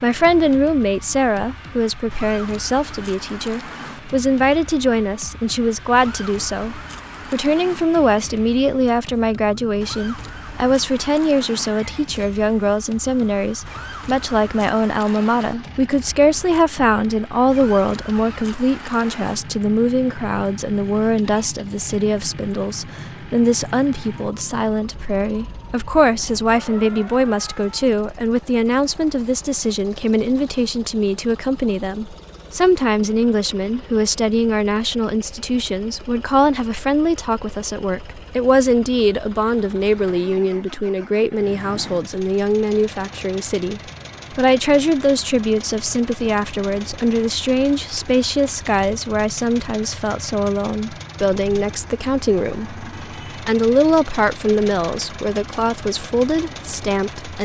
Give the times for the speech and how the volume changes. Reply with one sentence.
The speech can be heard from 0.0 to 57.4 s, at a steady volume.